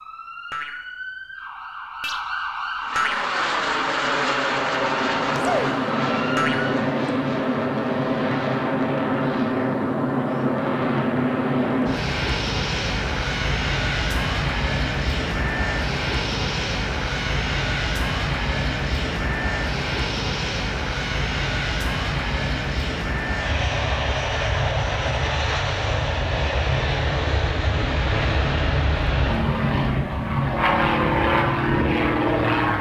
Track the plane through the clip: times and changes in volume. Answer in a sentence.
You can hear the plane from 2.8 to 32.7 s, at a steady volume.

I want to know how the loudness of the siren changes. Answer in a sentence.
The volume of the siren goes up.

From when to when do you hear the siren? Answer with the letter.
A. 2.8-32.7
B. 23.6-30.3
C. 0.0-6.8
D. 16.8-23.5
C.